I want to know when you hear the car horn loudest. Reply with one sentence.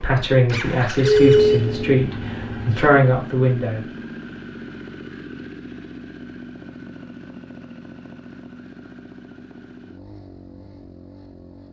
The volume of the car horn peaks at 1 second.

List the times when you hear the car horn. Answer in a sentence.
You can hear the car horn from 1.0 to 2.9 s.